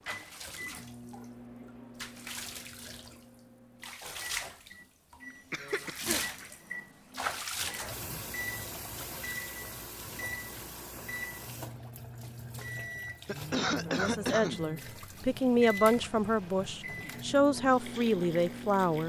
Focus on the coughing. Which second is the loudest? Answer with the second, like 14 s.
14 s.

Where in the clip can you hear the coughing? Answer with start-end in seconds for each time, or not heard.
5.5-6.5, 13.2-14.6.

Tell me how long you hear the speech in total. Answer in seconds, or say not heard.
5 s.